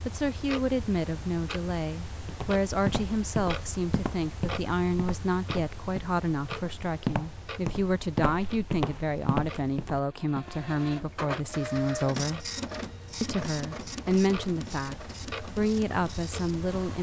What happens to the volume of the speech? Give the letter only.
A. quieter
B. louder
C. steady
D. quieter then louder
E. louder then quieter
C.